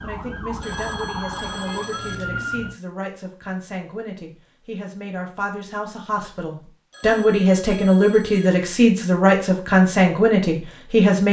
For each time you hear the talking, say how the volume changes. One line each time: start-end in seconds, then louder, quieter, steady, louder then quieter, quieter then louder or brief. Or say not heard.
0.0-11.2 louder.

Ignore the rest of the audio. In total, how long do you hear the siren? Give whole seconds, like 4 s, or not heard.
3 s.